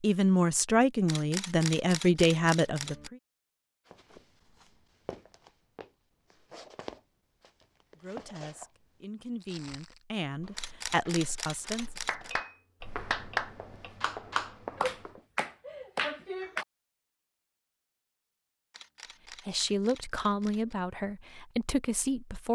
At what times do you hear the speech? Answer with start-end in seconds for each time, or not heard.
0.0-3.1, 8.0-11.9, 19.4-22.4.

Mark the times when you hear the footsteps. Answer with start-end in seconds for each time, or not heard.
3.9-15.2.